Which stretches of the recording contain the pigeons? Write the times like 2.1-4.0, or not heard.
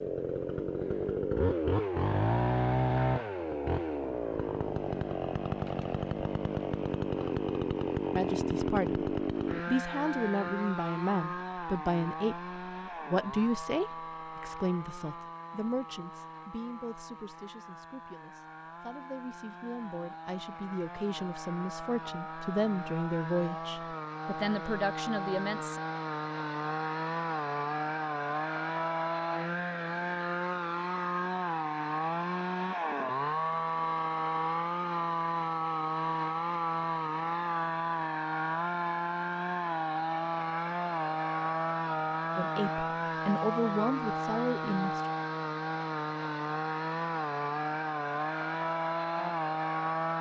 not heard.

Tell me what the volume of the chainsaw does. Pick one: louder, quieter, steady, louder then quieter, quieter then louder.
quieter then louder.